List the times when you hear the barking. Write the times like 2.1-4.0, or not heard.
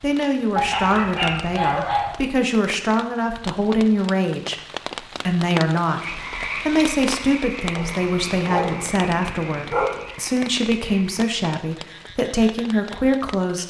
0.6-2.1, 7.8-10.1.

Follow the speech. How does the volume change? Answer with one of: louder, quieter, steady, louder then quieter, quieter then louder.
steady.